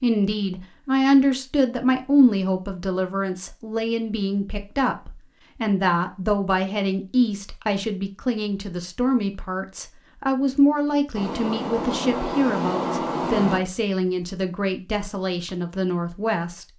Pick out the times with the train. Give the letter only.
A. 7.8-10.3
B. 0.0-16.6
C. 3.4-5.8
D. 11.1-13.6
D.